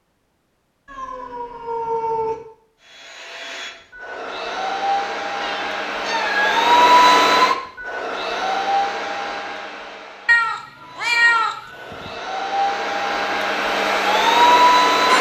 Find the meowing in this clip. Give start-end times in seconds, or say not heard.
0.8-2.4, 5.4-6.5, 10.2-12.1.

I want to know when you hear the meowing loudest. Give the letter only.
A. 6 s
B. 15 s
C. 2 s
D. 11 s
D.